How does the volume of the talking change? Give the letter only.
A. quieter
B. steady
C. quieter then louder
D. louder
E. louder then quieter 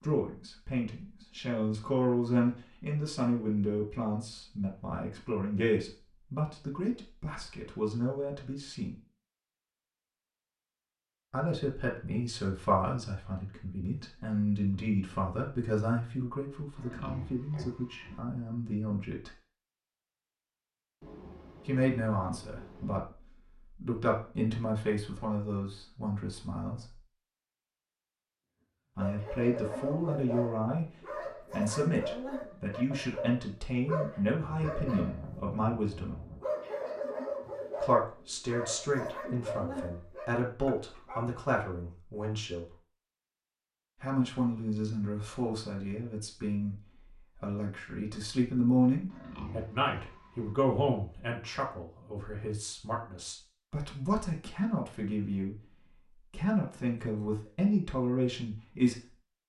B.